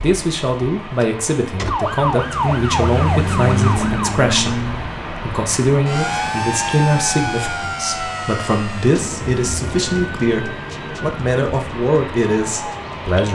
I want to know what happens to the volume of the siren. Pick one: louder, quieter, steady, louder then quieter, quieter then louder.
quieter.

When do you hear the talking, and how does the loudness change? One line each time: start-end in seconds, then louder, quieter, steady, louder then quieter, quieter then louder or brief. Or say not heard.
0.0-13.2 steady.